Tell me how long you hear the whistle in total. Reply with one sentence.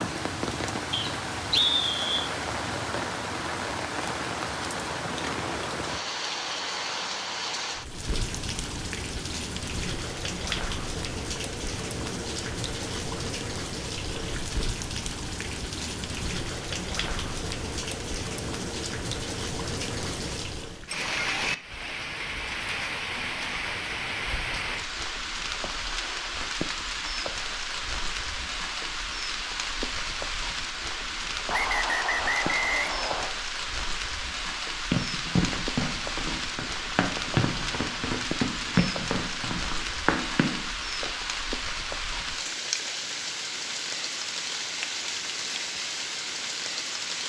You can hear the whistle for 3 seconds altogether.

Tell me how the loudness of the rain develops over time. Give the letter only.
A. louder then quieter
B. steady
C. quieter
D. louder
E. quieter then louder
B.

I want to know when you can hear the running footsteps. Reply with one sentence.
You can hear the running footsteps from 34.9 to 41.1 s.